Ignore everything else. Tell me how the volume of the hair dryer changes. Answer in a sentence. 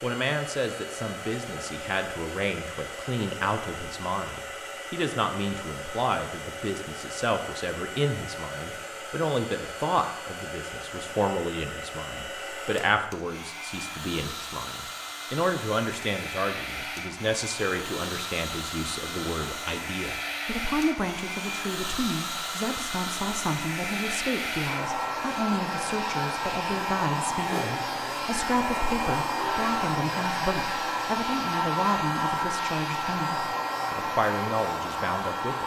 The volume of the hair dryer goes up.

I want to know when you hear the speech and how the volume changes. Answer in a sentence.
You can hear the speech from 0.0 to 35.6 s, at a steady volume.